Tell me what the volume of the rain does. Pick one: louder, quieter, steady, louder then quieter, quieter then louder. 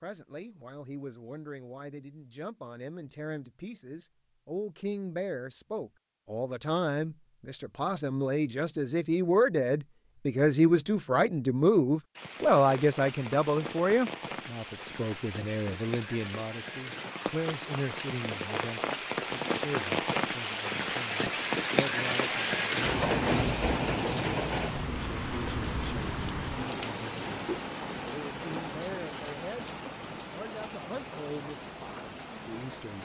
louder then quieter.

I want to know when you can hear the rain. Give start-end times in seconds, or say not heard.
12.2-33.0.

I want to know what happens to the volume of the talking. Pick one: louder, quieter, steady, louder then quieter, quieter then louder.
louder then quieter.